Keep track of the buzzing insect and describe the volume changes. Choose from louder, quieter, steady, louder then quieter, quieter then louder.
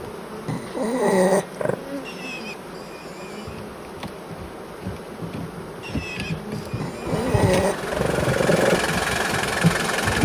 louder.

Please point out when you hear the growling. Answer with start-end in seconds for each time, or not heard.
0.5-1.8, 6.8-8.8.